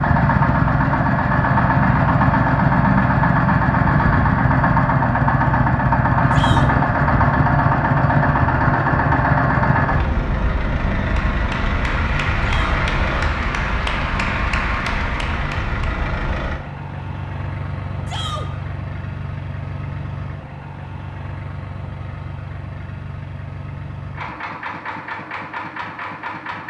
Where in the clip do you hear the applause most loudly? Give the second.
14 s.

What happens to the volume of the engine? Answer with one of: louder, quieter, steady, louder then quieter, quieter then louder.
quieter.